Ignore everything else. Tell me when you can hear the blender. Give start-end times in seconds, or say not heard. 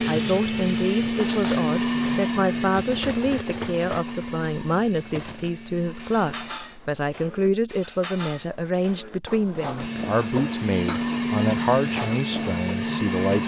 0.0-6.5, 9.8-13.4.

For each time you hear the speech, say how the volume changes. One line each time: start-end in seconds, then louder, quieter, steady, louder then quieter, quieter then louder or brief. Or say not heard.
0.0-13.4 steady.